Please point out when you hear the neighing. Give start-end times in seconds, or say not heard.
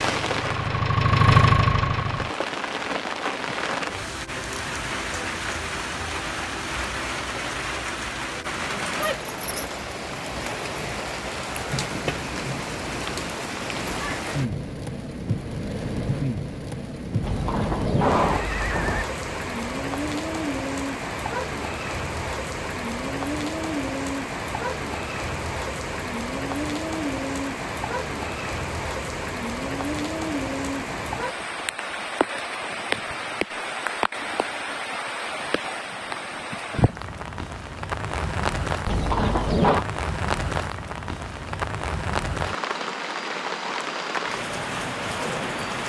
17.2-19.1, 38.9-39.9.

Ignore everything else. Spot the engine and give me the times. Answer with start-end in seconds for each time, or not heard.
0.0-2.3.